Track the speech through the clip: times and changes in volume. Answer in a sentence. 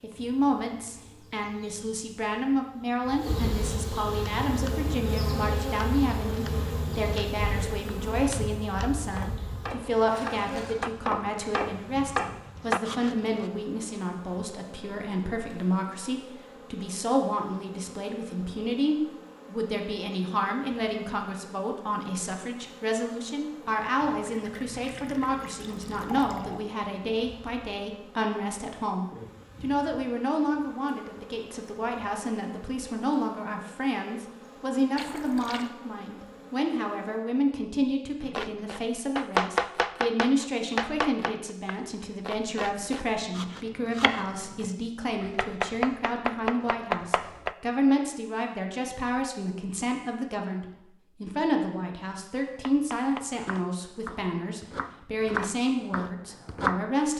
You can hear the speech from 0.0 to 57.1 s, at a steady volume.